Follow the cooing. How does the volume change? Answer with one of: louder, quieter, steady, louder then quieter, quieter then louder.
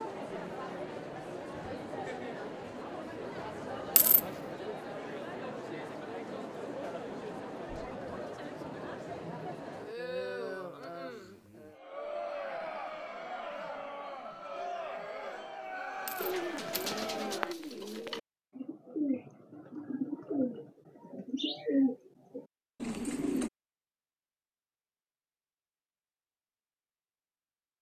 louder.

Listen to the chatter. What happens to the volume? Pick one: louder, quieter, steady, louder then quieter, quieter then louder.
steady.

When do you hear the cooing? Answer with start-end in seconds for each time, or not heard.
16.1-23.5.